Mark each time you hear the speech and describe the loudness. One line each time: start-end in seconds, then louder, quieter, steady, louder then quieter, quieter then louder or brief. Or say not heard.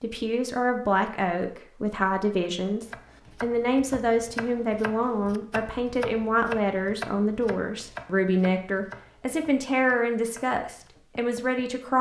0.0-11.9 steady.